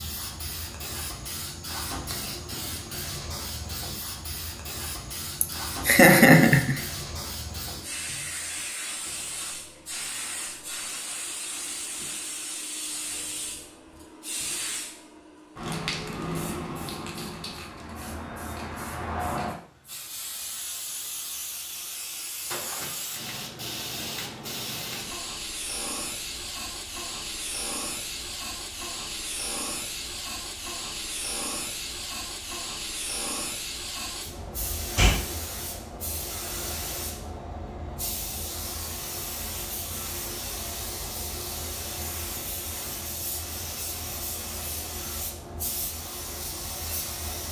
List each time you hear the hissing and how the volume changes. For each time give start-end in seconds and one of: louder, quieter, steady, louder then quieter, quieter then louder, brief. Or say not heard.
0.0-47.4 steady.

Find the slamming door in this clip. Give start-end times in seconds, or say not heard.
34.2-35.2.